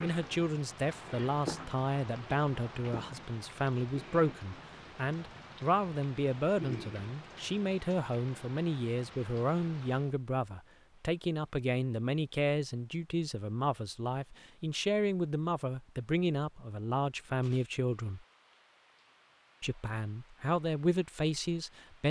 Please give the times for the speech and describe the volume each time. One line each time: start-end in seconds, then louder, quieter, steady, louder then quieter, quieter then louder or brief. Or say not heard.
0.0-18.2 steady
19.6-22.0 brief.